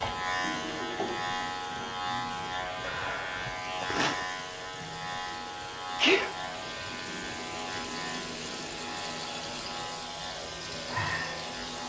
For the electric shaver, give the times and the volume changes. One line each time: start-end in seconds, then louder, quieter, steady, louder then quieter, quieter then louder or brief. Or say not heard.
0.0-11.8 quieter.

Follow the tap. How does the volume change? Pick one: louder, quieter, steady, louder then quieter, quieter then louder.
quieter then louder.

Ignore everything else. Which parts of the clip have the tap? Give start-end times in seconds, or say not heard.
0.0-11.8.